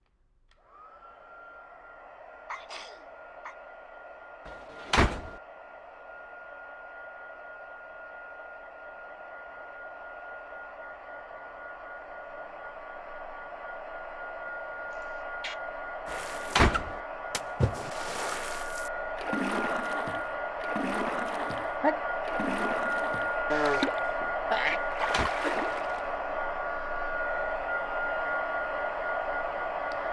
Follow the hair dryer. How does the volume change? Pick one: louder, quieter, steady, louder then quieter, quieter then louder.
louder.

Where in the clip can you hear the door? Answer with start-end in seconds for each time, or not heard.
4.5-5.3, 16.1-17.0, 24.6-25.3.